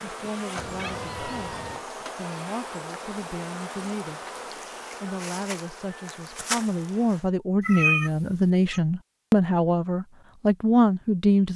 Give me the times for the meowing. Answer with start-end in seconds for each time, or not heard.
0.6-1.9, 7.6-8.8.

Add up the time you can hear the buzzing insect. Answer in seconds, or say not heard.
7 s.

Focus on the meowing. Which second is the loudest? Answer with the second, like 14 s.
8 s.